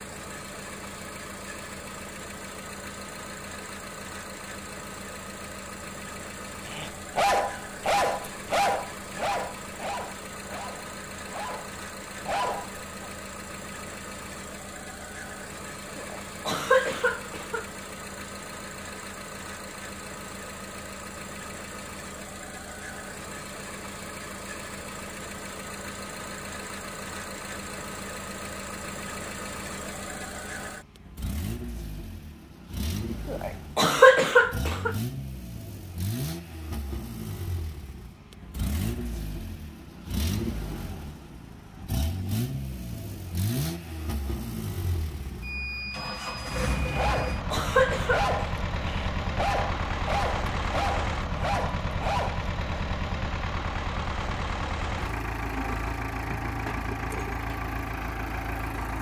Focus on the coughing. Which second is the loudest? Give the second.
34 s.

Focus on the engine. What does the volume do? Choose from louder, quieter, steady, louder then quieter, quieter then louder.
louder.